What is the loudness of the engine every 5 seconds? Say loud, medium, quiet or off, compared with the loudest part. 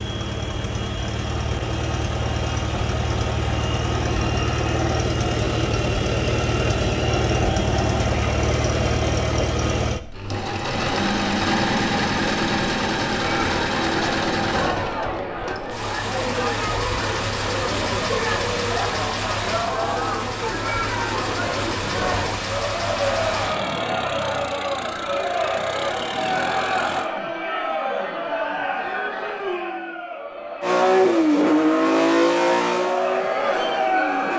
medium, loud, loud, medium, medium, medium, loud.